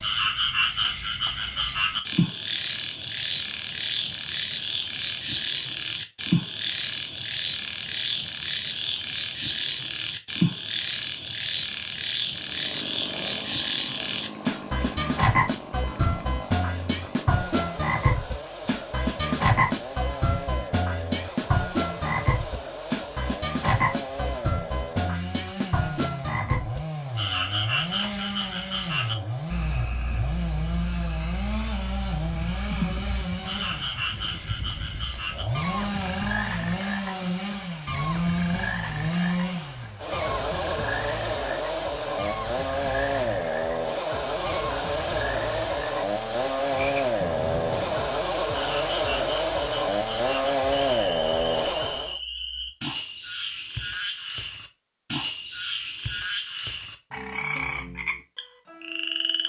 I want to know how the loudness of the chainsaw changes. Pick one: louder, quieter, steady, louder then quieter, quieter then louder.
louder.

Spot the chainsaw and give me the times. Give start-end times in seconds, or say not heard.
12.2-52.2.